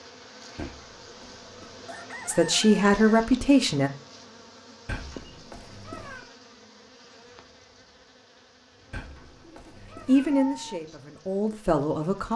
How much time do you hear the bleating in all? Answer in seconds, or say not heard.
not heard.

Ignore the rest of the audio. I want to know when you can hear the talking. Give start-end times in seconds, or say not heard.
2.2-3.9, 10.1-12.3.